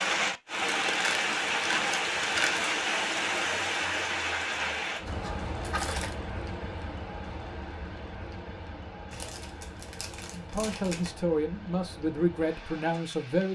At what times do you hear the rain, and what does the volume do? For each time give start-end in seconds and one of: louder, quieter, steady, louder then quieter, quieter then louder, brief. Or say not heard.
0.0-13.5 quieter.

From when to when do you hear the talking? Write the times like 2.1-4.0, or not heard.
10.3-13.5.